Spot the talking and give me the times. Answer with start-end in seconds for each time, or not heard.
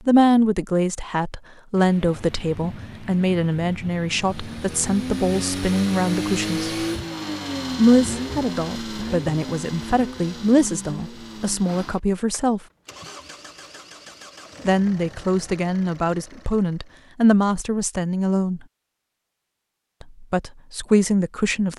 0.1-6.8, 7.8-12.6, 14.7-18.6, 20.0-21.7.